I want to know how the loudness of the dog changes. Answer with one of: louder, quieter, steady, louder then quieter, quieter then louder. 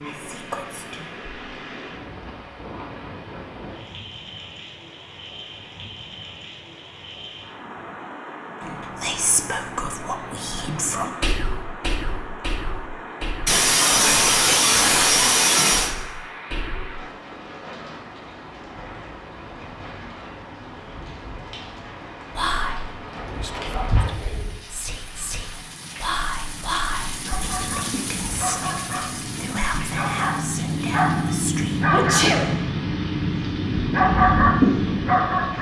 louder.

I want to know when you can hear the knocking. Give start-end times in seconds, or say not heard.
not heard.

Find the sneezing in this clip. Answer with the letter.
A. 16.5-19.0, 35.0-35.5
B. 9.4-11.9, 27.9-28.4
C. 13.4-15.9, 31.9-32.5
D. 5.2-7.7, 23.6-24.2
C.